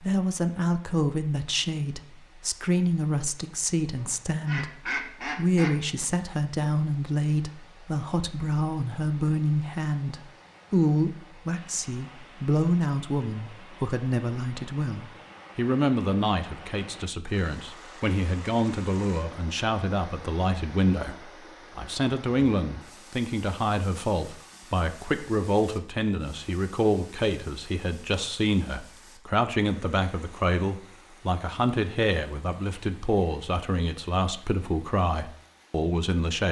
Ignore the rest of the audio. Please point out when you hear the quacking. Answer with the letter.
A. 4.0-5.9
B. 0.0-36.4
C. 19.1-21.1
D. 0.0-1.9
A.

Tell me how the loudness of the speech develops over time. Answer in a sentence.
The volume of the speech stays about the same.